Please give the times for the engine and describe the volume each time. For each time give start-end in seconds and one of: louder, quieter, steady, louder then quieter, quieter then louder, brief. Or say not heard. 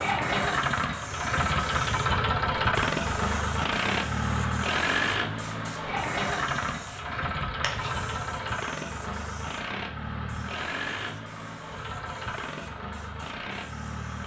0.0-14.2 quieter.